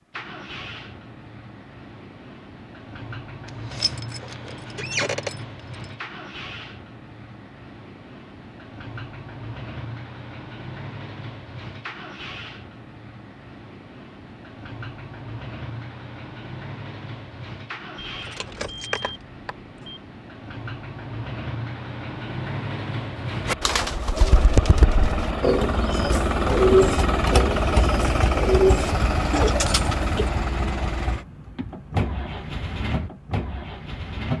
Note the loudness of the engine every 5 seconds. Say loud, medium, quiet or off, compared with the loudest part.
quiet, quiet, quiet, quiet, medium, loud, medium.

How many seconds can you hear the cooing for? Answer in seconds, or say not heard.
7 s.